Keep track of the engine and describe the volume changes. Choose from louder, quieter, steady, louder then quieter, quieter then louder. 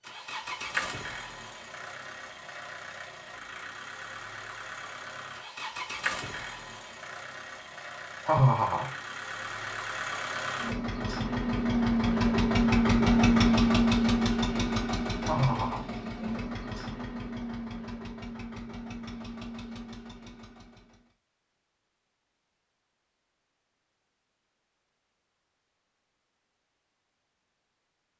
louder then quieter.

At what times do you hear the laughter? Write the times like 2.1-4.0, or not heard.
8.2-8.9, 15.2-15.8.